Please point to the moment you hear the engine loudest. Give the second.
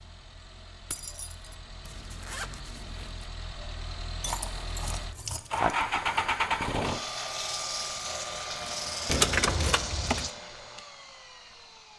6 s.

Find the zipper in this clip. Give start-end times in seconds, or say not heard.
1.9-3.2.